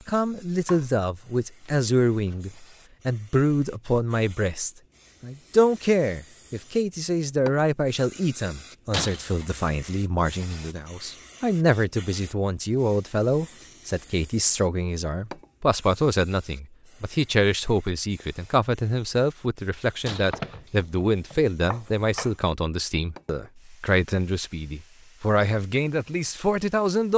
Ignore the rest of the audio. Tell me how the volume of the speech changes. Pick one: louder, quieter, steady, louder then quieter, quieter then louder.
steady.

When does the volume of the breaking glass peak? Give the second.
9 s.